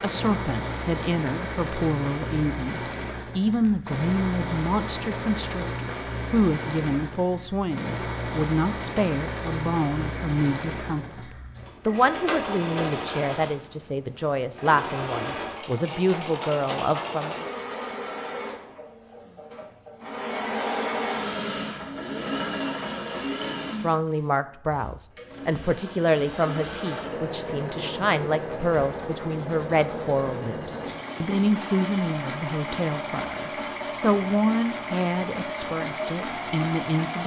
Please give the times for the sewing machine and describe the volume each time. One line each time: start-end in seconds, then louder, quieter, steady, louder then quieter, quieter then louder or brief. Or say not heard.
0.0-37.2 steady.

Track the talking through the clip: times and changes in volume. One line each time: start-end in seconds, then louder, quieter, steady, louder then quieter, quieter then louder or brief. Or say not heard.
0.0-17.4 steady
23.6-37.2 steady.